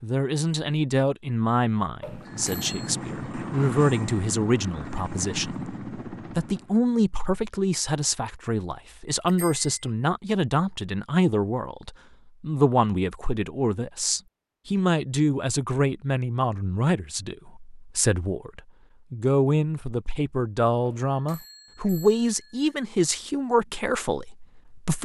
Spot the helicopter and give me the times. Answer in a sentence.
The helicopter can be heard from 2.0 to 6.8 s.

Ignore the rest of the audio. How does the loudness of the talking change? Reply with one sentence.
The volume of the talking stays about the same.